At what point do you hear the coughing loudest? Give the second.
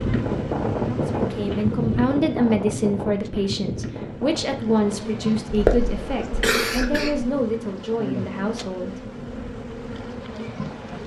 6 s.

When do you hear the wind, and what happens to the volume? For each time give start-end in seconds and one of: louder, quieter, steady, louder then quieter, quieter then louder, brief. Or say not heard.
0.0-11.0 quieter.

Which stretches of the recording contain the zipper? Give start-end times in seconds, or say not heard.
not heard.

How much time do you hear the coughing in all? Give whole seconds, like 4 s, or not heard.
2 s.